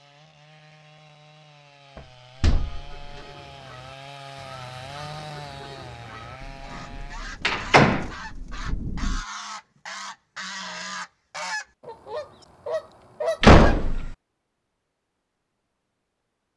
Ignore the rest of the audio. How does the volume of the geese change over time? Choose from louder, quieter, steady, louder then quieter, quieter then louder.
louder.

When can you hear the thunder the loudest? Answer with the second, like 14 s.
9 s.